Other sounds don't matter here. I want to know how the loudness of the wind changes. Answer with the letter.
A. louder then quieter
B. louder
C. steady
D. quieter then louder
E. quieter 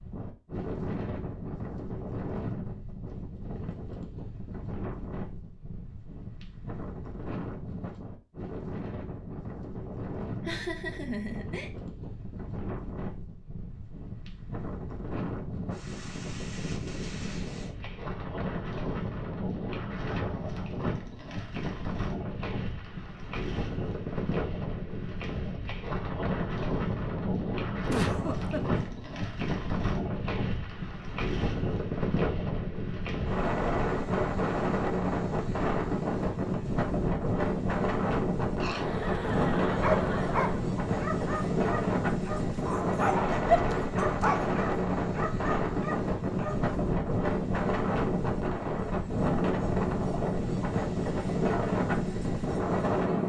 B.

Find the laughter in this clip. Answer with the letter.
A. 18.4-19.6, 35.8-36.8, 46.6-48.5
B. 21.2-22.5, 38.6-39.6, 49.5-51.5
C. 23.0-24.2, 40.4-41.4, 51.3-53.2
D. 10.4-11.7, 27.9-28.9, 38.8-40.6
D.